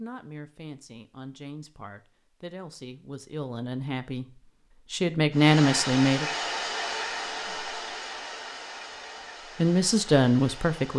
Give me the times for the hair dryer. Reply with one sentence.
The hair dryer can be heard from 5.3 to 10.9 s.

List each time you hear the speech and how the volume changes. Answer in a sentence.
You can hear the speech from 0.0 to 6.2 s, getting louder; and briefly from 9.6 to 10.9 s.